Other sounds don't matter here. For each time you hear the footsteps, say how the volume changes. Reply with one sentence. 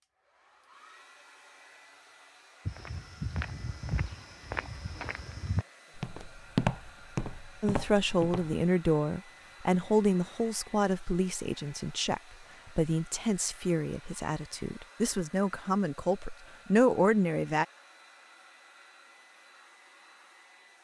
The footsteps can be heard from 2.6 to 8.6 s, getting louder then quieter.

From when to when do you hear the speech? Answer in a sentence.
You can hear the speech from 7.6 to 17.6 s.